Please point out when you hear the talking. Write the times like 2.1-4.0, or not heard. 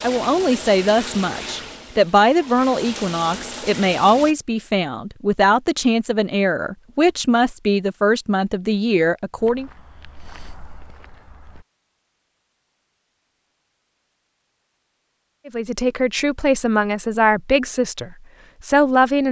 0.0-9.7, 15.4-19.2.